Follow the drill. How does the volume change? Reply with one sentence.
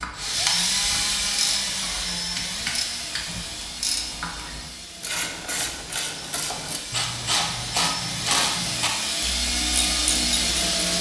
The volume of the drill goes down, then up.